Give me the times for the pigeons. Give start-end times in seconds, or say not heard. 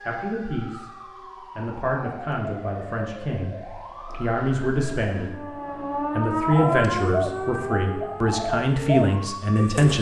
6.5-9.9.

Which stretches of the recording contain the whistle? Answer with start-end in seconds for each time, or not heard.
not heard.